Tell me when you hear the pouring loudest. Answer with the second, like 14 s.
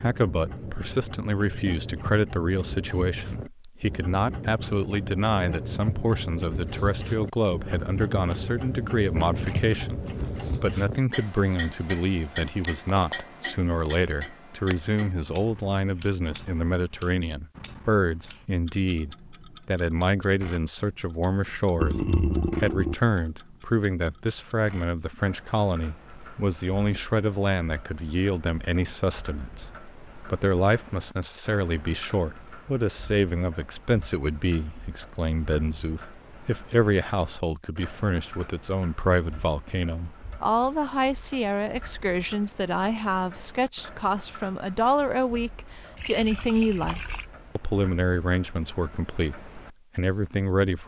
22 s.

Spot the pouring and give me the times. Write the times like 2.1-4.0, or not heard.
9.3-10.6, 21.8-22.9, 46.0-47.2.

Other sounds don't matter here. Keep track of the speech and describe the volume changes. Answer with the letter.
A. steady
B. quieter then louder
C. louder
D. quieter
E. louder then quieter
A.